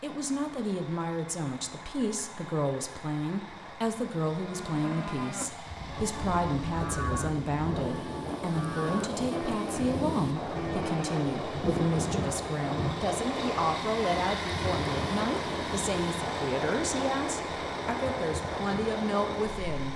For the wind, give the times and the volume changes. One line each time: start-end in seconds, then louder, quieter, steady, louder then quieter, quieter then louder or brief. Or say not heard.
5.7-19.8 steady.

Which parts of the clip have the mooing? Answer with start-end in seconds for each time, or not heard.
4.3-11.3.